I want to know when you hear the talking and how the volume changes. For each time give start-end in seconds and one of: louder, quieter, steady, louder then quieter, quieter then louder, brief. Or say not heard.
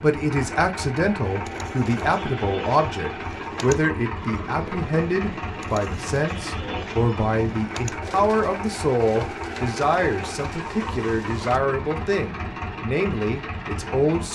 0.0-14.2 steady.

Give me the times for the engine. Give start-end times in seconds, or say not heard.
0.0-14.2.